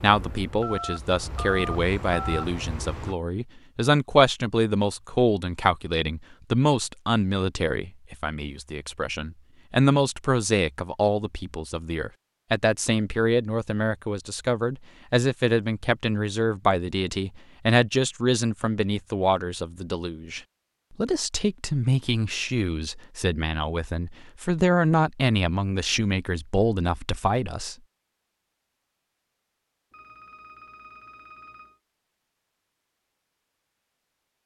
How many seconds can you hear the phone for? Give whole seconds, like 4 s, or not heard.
4 s.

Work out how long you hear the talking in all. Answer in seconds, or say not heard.
28 s.